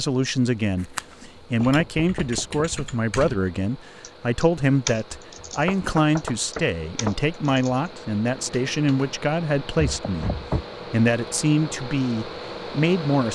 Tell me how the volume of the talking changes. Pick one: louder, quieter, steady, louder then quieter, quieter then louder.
steady.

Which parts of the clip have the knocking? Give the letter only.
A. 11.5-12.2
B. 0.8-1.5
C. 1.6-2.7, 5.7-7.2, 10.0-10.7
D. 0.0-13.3
C.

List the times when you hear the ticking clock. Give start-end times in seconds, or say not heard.
not heard.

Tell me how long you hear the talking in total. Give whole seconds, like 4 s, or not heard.
13 s.